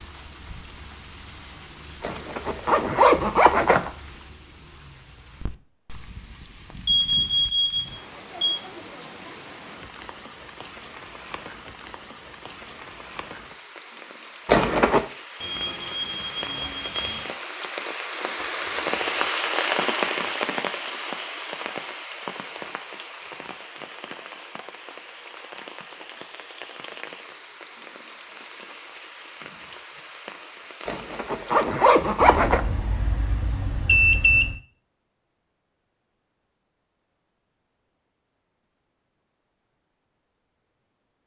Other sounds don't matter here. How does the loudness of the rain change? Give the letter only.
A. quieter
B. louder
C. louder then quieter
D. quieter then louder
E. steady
C.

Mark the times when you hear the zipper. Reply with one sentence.
The zipper can be heard from 2.0 to 3.9 s, from 14.4 to 15.1 s and from 30.9 to 32.6 s.